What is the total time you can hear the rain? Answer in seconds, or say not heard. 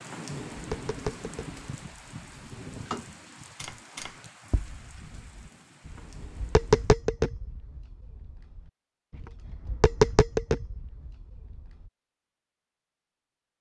7 s.